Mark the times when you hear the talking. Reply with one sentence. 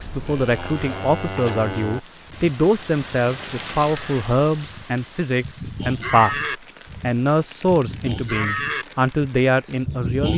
You can hear the talking from 0.0 to 10.3 s.